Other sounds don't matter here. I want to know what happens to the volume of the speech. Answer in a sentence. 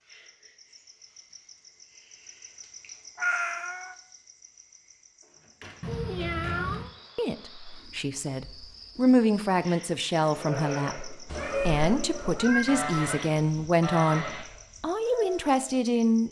The volume of the speech stays about the same.